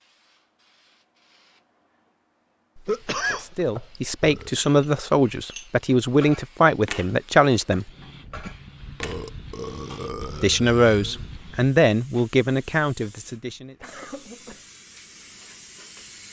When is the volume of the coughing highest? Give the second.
3 s.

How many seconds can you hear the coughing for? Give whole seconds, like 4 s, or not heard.
2 s.